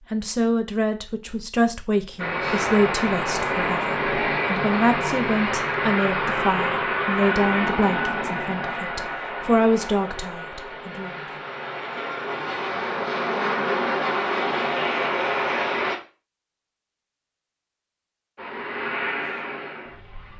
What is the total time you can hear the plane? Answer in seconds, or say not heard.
16 s.